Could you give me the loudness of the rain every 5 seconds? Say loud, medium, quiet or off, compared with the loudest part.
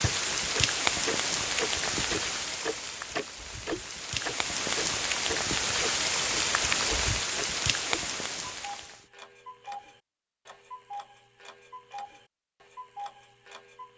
loud, loud, off.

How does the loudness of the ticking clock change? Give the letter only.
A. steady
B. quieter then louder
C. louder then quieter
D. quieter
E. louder
D.